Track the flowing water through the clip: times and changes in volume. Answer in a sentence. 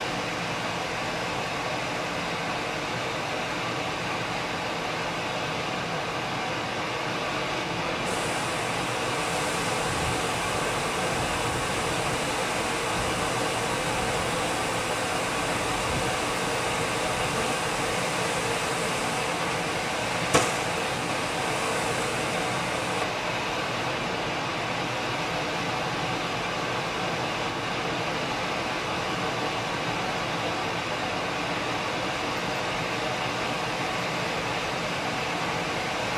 The flowing water can be heard from 0.0 to 36.1 s, at a steady volume.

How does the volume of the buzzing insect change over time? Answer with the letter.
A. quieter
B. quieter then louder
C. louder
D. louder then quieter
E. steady
E.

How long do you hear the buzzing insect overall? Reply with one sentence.
The buzzing insect can be heard for 15 seconds in total.